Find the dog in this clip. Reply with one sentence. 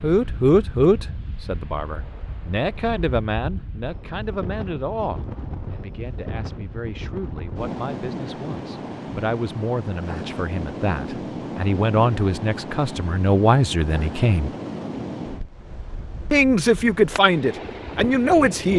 You can't hear the dog here.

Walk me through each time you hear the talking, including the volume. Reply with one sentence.
You can hear the talking from 0.0 to 14.5 s, getting quieter then louder; and briefly from 16.3 to 18.7 s.